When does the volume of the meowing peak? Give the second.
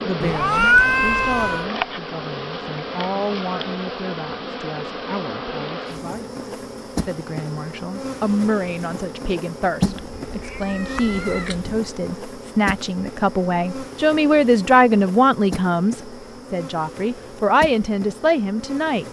1 s.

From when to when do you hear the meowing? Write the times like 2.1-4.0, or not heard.
0.2-1.6, 9.8-11.8.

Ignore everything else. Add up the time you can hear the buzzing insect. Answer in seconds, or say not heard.
19 s.